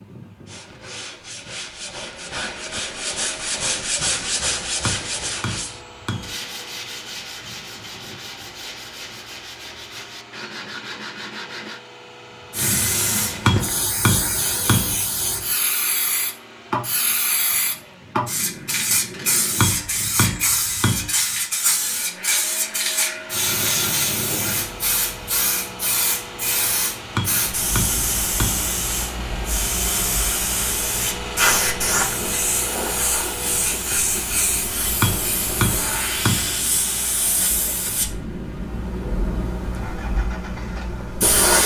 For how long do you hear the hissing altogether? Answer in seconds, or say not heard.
29 s.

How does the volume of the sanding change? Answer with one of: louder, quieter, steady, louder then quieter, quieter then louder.
louder then quieter.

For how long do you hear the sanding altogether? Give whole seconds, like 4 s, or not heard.
11 s.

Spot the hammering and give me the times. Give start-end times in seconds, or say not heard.
4.8-6.4, 13.4-15.0, 19.6-21.1, 27.1-28.7, 35.0-36.5.